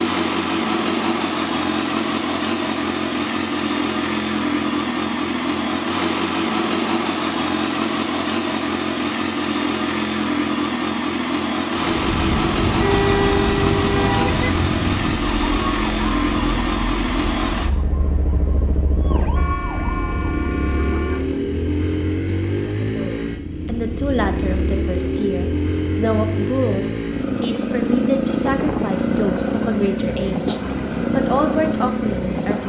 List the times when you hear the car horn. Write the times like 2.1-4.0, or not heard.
12.8-14.3, 19.3-21.3.